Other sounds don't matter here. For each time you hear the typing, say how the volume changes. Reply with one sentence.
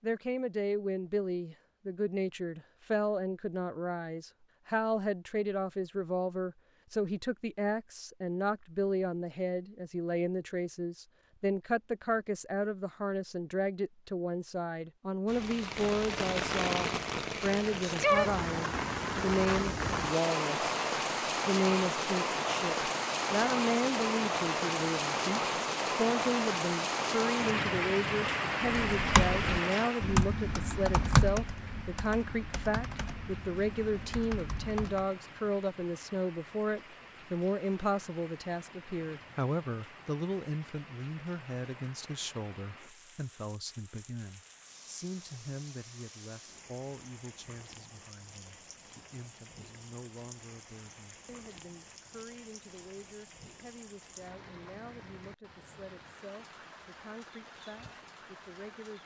You can hear the typing from 28.6 to 35.1 s, getting quieter.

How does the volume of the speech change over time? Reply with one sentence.
The volume of the speech goes down.